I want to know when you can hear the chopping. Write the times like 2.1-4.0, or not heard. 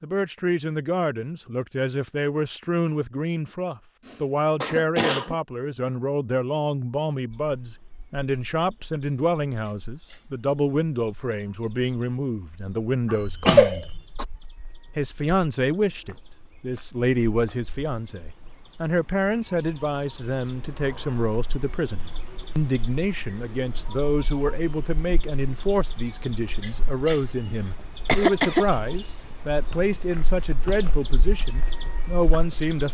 not heard.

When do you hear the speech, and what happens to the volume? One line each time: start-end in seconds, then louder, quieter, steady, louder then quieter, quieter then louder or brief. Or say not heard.
0.0-13.8 steady
14.9-32.8 steady.